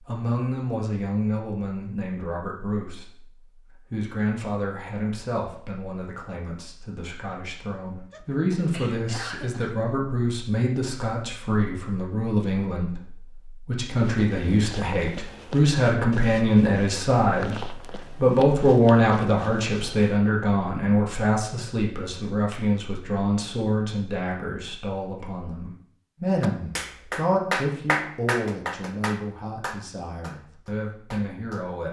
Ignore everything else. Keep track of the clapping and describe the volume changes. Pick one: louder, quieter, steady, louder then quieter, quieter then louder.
quieter.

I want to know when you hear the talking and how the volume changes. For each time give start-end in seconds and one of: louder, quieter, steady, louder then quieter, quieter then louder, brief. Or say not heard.
0.0-31.8 louder then quieter.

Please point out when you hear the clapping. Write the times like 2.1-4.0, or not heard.
26.4-31.7.